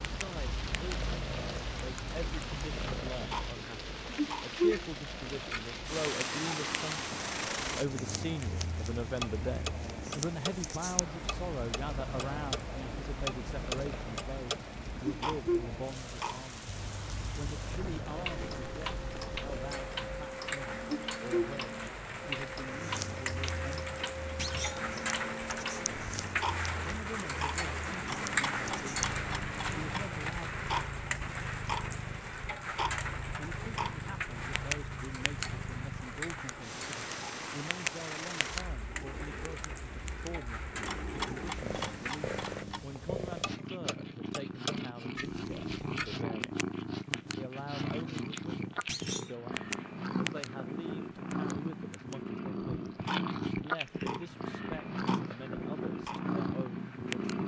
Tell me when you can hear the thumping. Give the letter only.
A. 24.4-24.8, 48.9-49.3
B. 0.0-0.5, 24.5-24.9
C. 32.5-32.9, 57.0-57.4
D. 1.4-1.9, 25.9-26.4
A.